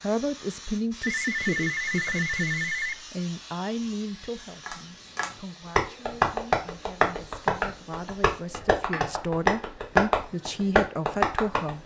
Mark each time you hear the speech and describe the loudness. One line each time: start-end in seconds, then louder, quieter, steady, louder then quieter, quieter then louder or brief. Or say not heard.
0.0-11.8 quieter then louder.